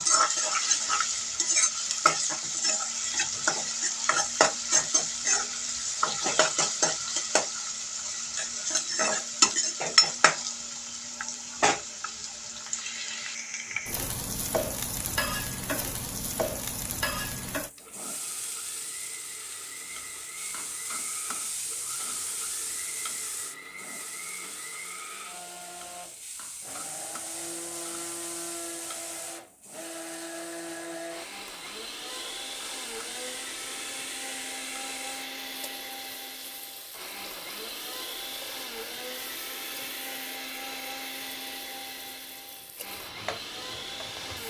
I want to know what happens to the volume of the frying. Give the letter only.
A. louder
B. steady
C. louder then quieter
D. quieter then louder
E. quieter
E.